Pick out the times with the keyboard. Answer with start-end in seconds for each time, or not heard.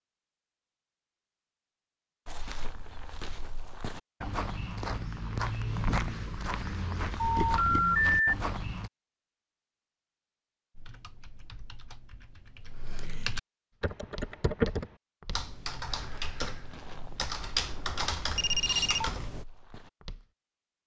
10.8-19.4.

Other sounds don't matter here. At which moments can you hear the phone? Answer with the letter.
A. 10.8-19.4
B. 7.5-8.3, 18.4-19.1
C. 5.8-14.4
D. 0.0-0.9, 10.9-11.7
B.